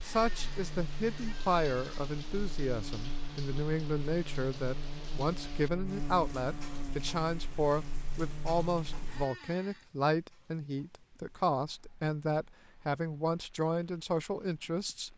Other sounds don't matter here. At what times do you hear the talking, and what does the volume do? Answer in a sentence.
You can hear the talking from 0.1 to 15.1 s, at a steady volume.